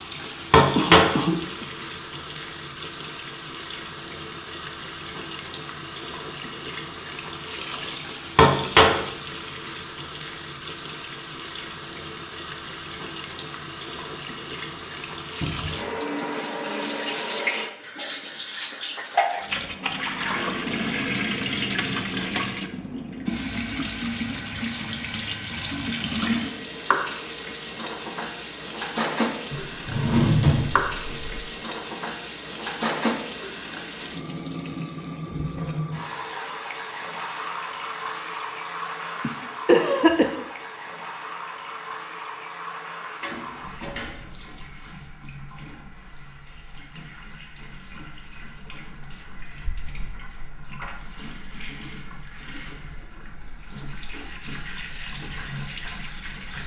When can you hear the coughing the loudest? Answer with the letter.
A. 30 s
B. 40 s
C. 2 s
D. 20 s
B.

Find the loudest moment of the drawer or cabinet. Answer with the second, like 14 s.
30 s.